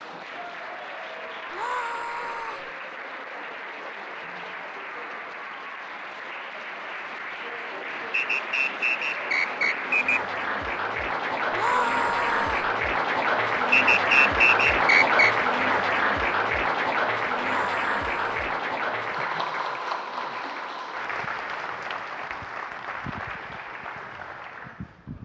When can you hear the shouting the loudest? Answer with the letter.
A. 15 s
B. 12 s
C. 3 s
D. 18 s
B.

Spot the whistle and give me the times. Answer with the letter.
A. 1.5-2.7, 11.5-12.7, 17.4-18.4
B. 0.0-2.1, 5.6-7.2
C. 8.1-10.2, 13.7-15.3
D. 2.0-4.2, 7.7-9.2
C.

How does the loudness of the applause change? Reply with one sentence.
The loudness of the applause goes up, then down.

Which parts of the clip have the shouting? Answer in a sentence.
You can hear the shouting from 1.5 to 2.7 s, from 11.5 to 12.7 s and from 17.4 to 18.4 s.